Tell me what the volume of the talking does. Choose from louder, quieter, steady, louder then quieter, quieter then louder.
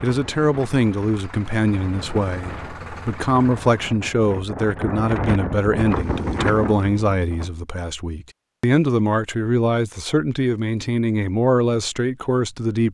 steady.